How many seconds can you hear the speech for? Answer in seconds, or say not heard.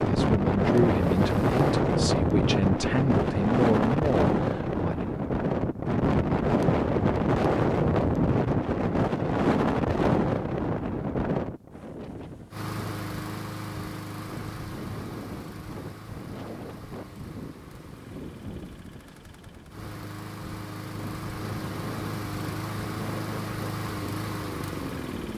5 s.